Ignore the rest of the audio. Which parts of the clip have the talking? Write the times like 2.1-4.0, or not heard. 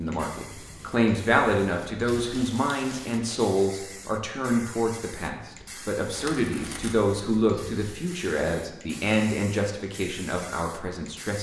0.0-11.3.